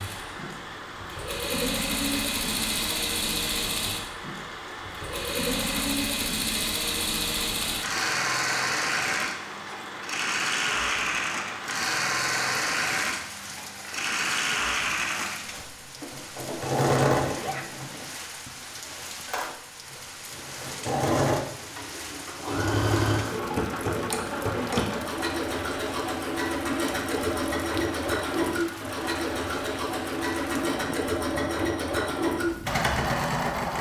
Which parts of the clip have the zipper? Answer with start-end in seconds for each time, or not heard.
17.2-17.6.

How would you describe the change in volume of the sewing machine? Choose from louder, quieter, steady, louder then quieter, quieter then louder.
steady.